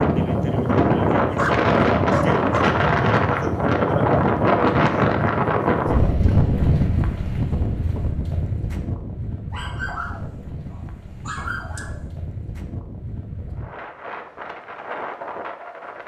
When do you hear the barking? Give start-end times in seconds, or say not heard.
1.4-2.7, 9.5-12.1.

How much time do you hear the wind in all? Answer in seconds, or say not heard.
16 s.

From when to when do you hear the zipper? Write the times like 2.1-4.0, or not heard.
not heard.